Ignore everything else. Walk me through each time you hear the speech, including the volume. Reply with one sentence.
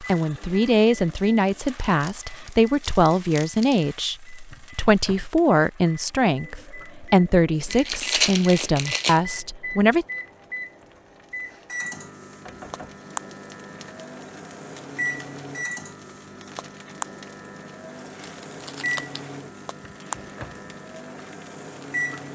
You can hear the speech from 0.0 to 10.1 s, at a steady volume.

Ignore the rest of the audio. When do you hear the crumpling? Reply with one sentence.
You can hear the crumpling from 1.8 to 3.9 s, from 7.7 to 9.2 s and from 18.2 to 19.3 s.